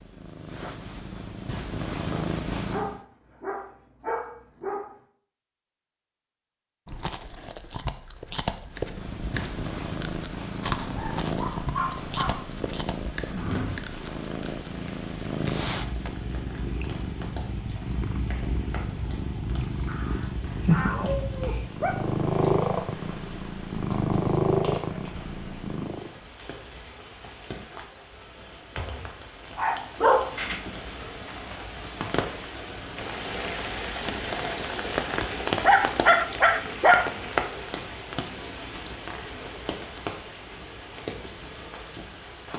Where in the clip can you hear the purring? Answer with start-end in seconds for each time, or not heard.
0.0-3.0, 8.7-26.1.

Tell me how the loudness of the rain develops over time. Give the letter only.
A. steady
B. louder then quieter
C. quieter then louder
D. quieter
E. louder
E.